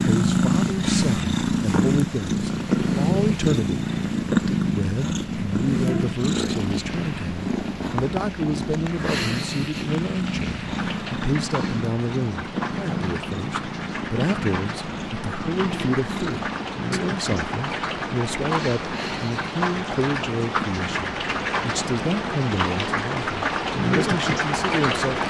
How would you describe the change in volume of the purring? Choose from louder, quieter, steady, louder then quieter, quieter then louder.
quieter.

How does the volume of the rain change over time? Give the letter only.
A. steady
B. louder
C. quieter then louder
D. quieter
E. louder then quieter
B.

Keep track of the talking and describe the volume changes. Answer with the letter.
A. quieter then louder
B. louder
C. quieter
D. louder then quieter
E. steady
E.